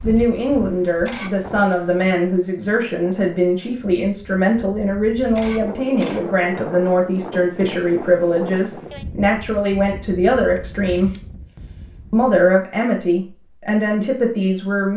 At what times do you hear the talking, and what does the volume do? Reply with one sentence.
The talking can be heard from 0.0 to 11.1 s, at a steady volume; and briefly from 12.1 to 14.9 s.